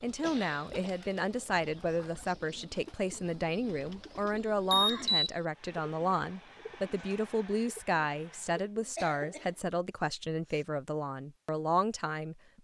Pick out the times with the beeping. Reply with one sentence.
You can hear the beeping from 4.7 to 5.3 s.